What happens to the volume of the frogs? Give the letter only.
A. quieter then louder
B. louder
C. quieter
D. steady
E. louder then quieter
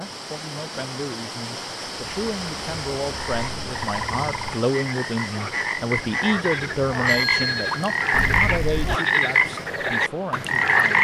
B.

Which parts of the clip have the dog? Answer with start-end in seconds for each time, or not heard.
not heard.